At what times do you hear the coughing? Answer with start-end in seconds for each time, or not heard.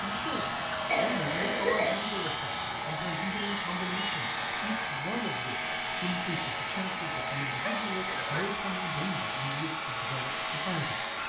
0.8-1.9, 7.5-8.4.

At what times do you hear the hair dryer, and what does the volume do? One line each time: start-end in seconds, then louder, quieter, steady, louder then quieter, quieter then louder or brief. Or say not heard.
0.0-11.2 steady.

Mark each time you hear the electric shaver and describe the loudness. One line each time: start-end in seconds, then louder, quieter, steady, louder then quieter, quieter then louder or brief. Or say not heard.
0.0-11.2 steady.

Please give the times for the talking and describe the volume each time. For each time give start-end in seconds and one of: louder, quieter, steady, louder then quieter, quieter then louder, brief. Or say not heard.
0.0-11.1 steady.